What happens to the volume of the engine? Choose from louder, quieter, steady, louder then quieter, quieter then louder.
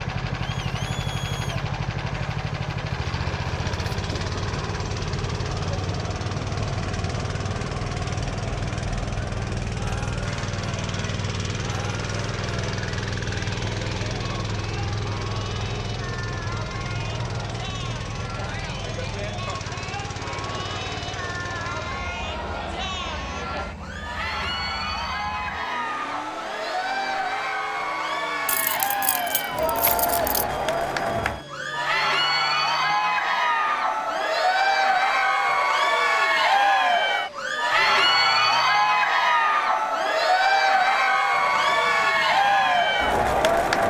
quieter.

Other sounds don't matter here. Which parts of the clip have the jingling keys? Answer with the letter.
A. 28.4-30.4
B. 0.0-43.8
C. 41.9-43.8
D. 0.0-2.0
A.